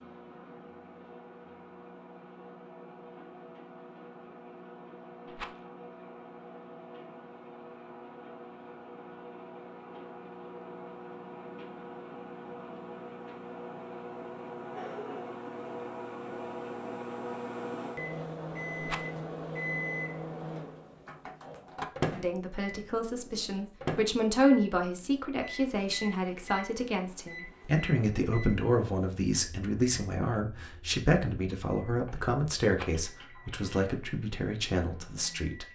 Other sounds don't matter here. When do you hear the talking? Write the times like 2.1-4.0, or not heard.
22.1-35.7.